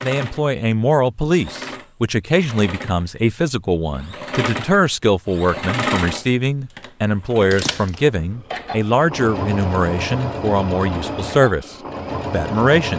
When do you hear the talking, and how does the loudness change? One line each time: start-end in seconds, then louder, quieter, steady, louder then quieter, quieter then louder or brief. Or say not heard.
0.0-12.9 steady.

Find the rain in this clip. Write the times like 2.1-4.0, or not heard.
not heard.